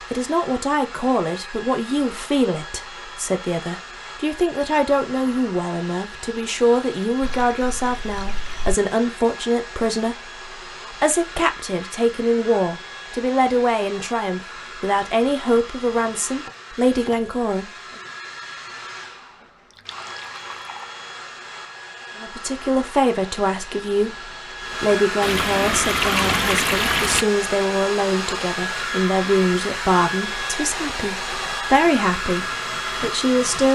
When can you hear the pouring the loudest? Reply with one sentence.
The loudest moment of the pouring is at 26 seconds.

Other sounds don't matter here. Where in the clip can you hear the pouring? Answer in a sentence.
The pouring can be heard from 7.2 to 8.8 s, from 19.8 to 20.9 s and from 25.2 to 27.2 s.